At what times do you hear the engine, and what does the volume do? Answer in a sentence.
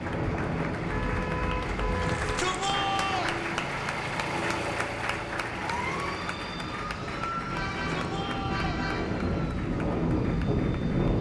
The engine can be heard from 0.0 to 11.1 s, getting louder then quieter.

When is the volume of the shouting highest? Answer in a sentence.
The loudest moment of the shouting is at 3 seconds.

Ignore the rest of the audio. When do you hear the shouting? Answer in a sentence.
You can hear the shouting from 2.0 to 3.4 s and from 7.8 to 8.8 s.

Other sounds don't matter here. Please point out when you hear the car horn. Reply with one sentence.
You can hear the car horn from 0.9 to 2.4 s and from 7.5 to 9.2 s.